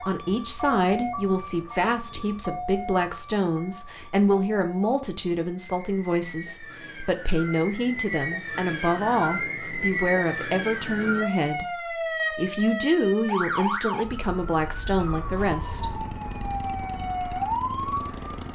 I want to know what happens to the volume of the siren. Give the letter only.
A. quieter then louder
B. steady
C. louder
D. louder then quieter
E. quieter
A.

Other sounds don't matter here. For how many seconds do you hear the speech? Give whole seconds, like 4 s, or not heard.
16 s.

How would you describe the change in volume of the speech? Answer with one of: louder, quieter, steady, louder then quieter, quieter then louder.
steady.